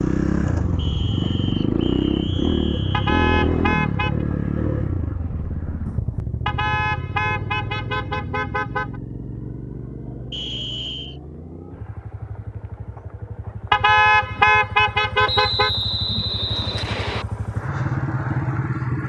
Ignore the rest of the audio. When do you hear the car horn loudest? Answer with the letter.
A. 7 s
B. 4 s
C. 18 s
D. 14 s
D.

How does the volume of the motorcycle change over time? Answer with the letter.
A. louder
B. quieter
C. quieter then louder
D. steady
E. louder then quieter
C.